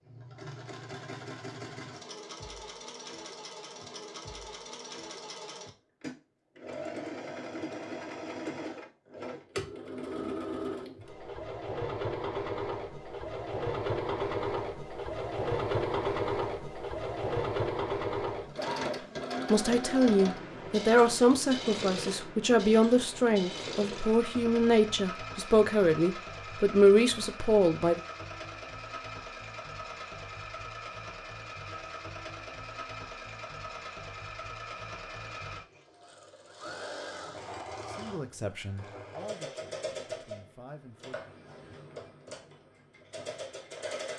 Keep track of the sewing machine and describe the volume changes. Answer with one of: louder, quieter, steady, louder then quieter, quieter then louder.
louder then quieter.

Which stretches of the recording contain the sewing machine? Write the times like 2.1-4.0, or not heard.
0.0-44.1.